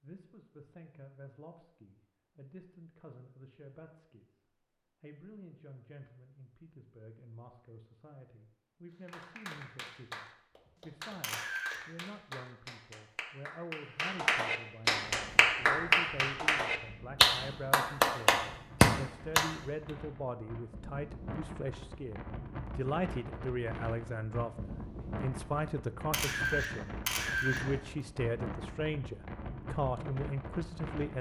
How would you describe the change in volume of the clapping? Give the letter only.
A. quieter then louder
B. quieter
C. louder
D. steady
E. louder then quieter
C.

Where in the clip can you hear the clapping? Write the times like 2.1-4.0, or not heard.
9.1-19.9.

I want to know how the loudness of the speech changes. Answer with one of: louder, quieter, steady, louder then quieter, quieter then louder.
louder.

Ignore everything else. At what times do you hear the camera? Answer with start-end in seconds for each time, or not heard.
11.2-11.8, 26.1-27.6.